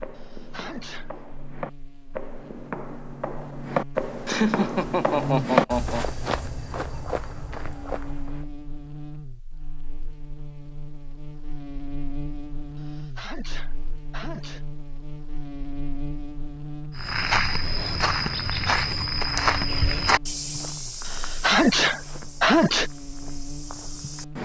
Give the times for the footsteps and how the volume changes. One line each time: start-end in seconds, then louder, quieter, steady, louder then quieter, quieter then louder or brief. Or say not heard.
0.0-8.4 louder then quieter
16.9-24.3 quieter.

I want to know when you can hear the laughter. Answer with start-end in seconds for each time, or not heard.
4.2-6.0.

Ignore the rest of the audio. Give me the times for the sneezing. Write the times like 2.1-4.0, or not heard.
0.1-1.1, 12.8-14.6, 21.1-22.9.